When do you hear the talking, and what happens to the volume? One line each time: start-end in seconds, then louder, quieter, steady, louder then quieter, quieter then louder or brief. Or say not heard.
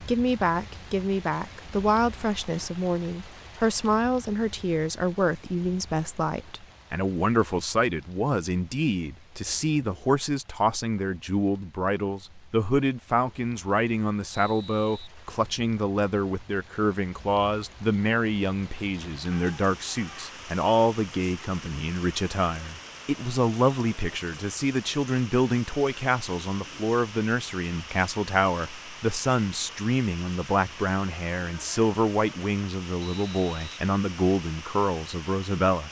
0.1-35.8 steady.